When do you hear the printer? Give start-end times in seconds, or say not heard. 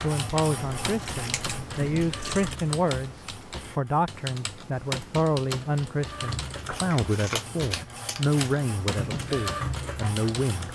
0.0-4.1, 6.0-10.7.